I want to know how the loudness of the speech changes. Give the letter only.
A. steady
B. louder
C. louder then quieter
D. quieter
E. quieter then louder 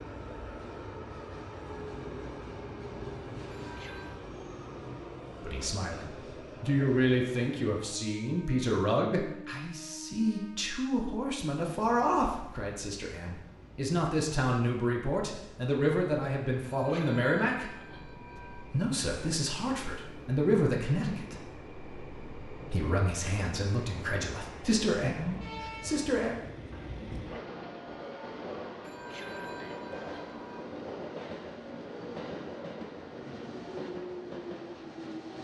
A.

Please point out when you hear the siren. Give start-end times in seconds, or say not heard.
not heard.